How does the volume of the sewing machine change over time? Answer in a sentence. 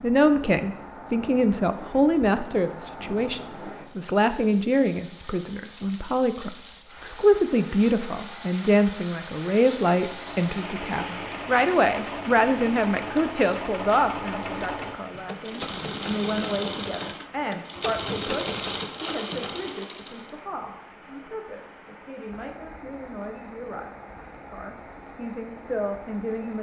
The volume of the sewing machine goes up.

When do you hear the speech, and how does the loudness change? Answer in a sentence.
You can hear the speech from 0.0 to 26.5 s, getting quieter.